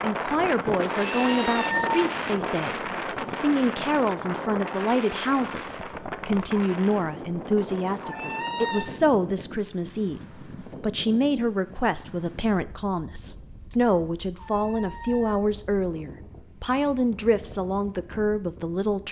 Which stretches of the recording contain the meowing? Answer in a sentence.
The meowing can be heard from 1.0 to 2.0 s, from 8.0 to 8.9 s and from 14.3 to 15.3 s.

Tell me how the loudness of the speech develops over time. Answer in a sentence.
The volume of the speech stays about the same.